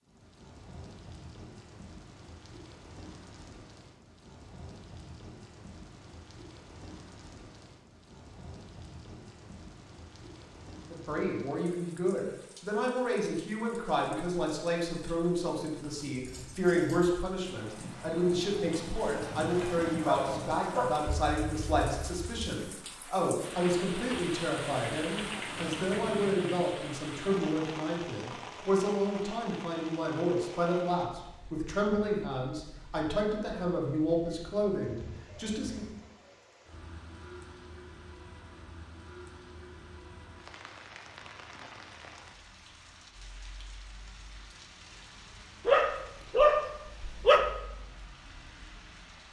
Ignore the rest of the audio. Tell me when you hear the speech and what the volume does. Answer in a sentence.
The speech can be heard from 10.8 to 35.9 s, at a steady volume.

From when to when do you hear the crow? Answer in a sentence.
The crow can't be heard in this clip.